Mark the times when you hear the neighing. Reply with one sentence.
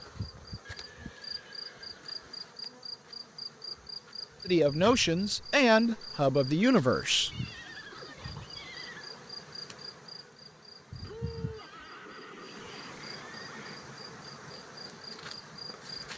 You can hear the neighing from 0.7 to 2.5 s, from 7.3 to 9.2 s and from 11.0 to 13.8 s.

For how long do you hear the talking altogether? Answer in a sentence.
The talking can be heard for 3 seconds in total.